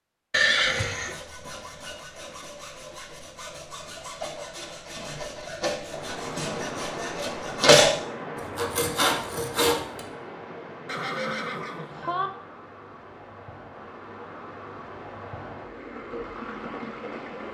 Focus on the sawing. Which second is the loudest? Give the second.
8 s.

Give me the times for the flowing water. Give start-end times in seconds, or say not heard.
5.8-17.4.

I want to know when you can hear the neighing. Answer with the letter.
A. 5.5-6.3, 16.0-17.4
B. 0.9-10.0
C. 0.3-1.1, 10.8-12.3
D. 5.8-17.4
C.